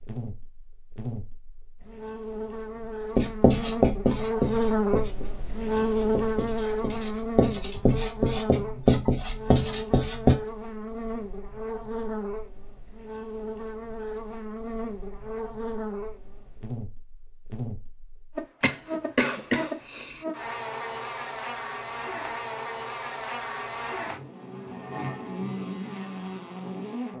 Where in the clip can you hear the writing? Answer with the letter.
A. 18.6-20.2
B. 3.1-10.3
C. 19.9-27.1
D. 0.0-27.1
B.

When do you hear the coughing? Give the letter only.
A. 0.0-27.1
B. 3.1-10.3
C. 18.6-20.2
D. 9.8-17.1
C.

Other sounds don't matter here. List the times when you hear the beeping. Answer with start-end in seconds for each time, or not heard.
not heard.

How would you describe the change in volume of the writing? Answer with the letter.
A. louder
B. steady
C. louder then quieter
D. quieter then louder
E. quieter
D.